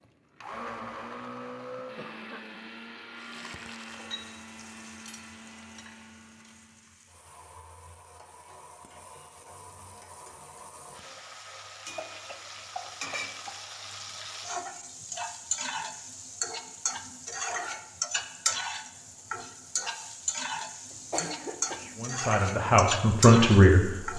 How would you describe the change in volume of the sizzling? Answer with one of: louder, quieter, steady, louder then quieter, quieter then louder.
louder.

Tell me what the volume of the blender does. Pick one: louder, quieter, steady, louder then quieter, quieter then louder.
quieter.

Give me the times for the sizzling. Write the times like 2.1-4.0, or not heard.
3.1-24.1.